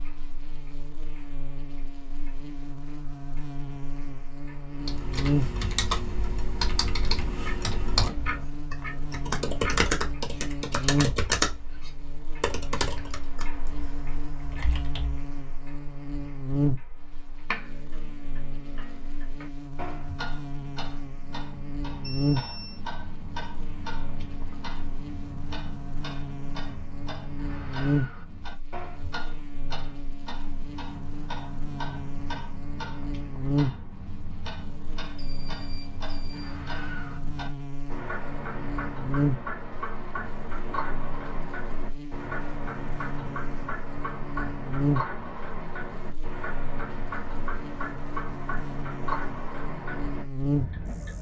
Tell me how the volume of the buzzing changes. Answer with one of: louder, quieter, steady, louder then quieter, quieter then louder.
steady.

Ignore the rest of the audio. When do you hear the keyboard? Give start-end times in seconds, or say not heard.
4.8-15.2.